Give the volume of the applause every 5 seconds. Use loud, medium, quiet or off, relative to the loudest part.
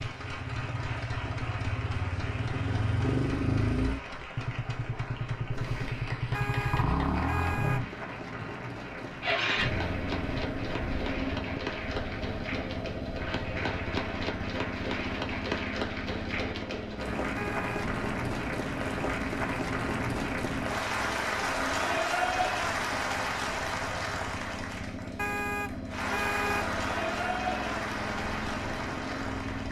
medium, medium, medium, loud, loud, loud.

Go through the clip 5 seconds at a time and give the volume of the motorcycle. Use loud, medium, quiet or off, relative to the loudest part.
loud, loud, medium, medium, medium, medium.